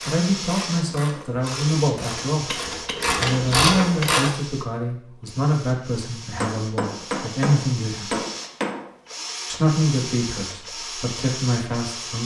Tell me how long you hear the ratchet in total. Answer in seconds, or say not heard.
4 s.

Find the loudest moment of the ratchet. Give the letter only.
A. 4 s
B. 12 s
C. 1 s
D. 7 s
A.